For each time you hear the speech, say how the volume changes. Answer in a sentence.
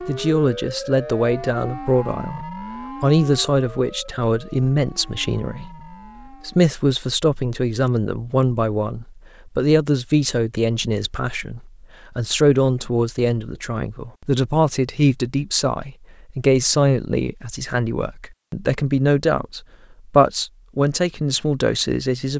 You can hear the speech from 0.1 to 22.3 s, at a steady volume.